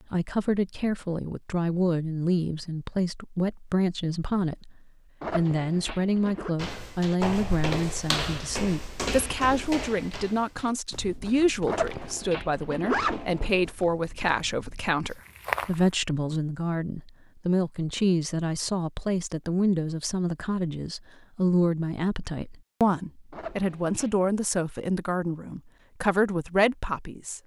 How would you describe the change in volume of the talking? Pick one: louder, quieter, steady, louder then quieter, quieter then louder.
steady.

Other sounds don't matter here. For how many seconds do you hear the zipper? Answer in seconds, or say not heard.
4 s.